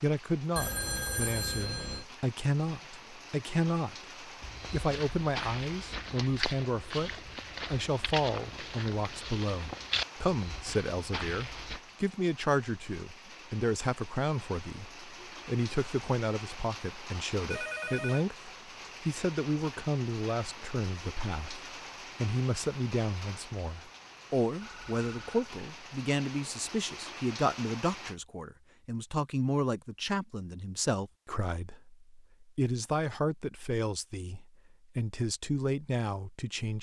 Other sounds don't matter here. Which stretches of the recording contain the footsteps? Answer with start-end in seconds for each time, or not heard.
4.4-11.8.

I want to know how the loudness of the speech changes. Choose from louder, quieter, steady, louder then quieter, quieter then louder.
steady.